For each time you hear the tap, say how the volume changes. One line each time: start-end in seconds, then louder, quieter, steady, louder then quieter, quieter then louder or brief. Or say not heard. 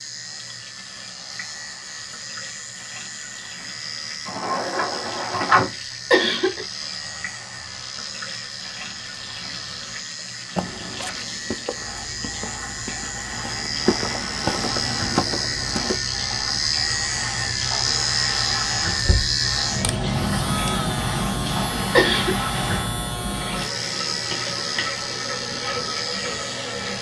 0.0-26.9 louder.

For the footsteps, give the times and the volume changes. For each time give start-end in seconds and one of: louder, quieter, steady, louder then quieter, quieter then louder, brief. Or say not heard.
10.6-16.0 quieter then louder.